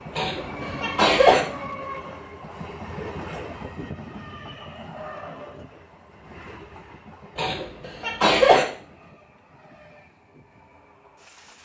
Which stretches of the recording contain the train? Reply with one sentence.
The train can be heard from 0.0 to 11.6 s.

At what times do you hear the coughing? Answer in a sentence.
You can hear the coughing from 0.1 to 1.4 s and from 7.3 to 8.7 s.